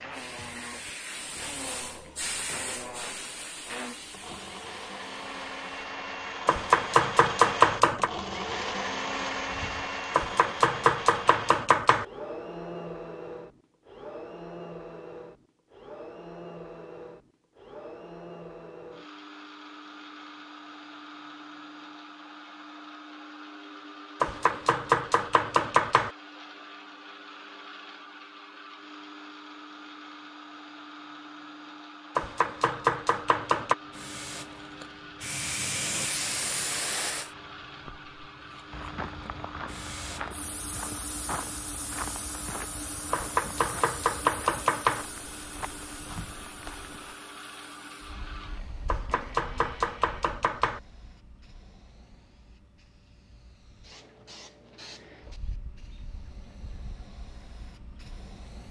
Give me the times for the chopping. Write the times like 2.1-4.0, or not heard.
6.5-8.1, 10.2-12.1, 24.2-26.1, 32.1-33.8, 43.1-45.0, 48.9-50.8.